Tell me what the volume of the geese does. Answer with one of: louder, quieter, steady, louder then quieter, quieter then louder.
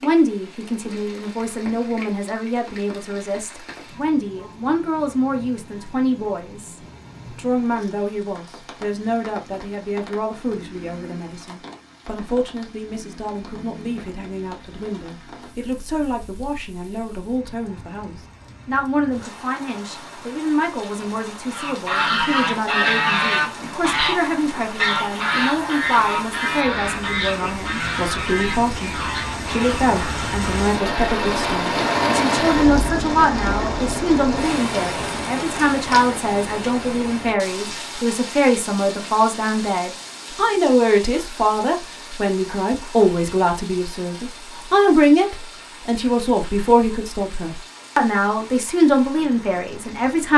quieter.